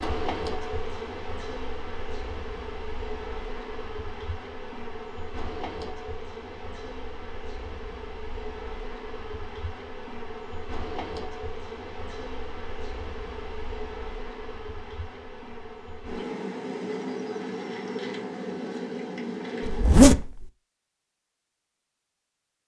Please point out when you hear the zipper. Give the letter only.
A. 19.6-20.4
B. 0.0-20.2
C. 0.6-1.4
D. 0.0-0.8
A.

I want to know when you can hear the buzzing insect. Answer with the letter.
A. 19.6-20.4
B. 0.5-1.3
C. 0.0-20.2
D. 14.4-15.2
C.